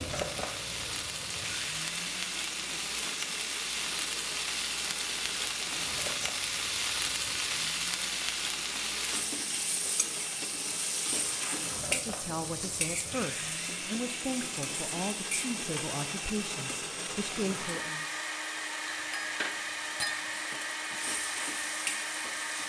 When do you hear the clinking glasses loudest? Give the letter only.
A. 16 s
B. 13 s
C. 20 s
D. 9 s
C.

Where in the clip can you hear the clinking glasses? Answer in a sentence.
The clinking glasses can be heard from 18.9 to 20.3 s.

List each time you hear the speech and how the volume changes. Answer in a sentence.
You can hear the speech from 11.8 to 18.1 s, at a steady volume.